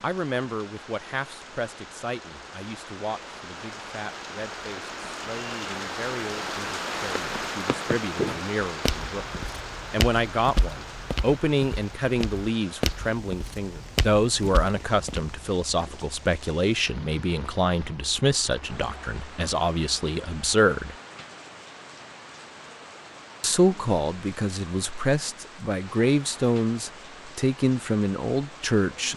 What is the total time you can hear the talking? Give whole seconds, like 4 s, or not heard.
27 s.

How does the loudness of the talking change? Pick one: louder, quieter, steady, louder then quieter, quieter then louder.
louder.